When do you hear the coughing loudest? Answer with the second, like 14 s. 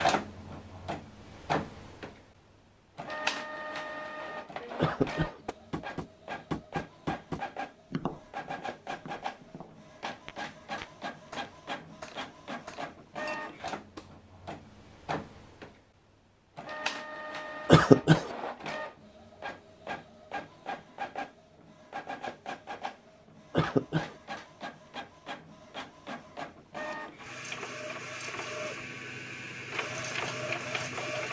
18 s.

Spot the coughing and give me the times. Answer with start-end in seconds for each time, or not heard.
4.8-5.4, 17.6-18.3, 23.5-24.1.